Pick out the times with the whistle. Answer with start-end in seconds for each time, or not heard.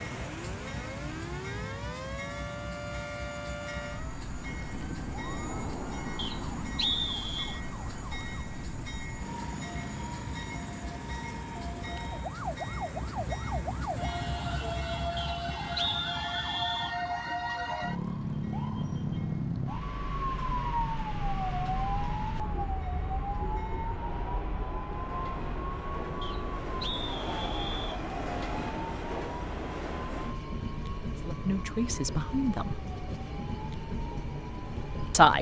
6.2-7.6, 15.2-16.9, 26.2-28.0.